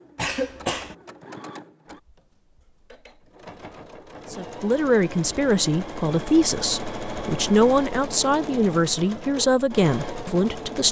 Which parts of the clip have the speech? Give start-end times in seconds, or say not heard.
4.3-10.8.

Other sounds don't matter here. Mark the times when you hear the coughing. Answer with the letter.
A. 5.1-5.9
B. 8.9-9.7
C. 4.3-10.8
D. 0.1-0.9
D.